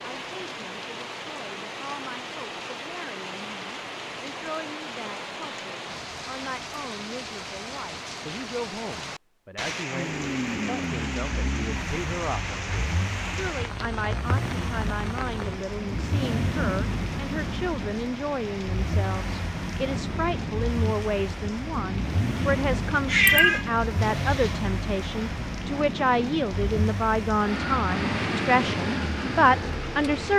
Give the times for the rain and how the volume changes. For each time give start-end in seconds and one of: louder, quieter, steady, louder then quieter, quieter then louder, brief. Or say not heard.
0.0-30.3 steady.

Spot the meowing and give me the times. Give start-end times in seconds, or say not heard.
23.1-24.6.